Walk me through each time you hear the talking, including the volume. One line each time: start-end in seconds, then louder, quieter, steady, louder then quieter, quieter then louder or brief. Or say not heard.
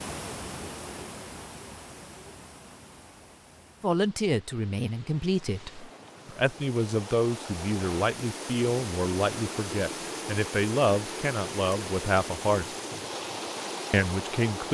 3.8-12.7 steady
13.9-14.6 brief.